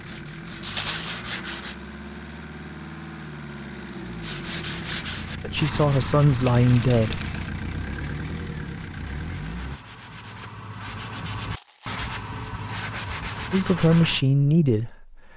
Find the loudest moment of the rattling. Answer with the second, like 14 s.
1 s.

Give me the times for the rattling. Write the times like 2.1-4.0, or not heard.
0.6-1.2, 6.5-7.5, 11.4-12.7.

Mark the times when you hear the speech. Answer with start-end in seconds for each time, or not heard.
5.4-7.2, 13.5-15.2.